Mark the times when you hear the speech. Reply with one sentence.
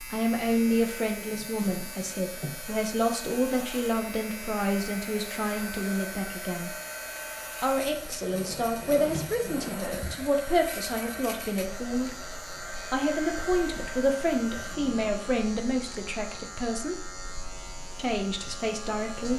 You can hear the speech from 0.0 to 6.8 s, from 7.6 to 12.1 s, from 12.9 to 17.1 s and from 17.9 to 19.3 s.